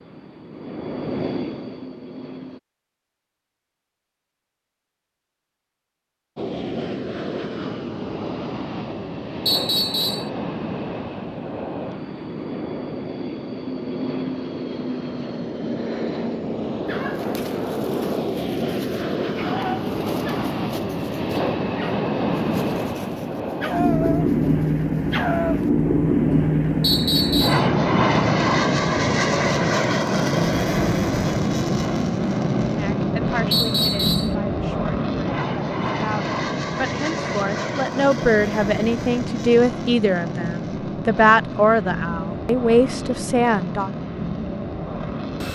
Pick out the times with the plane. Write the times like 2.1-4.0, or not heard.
0.0-2.6, 6.3-45.4.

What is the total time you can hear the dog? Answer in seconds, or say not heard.
9 s.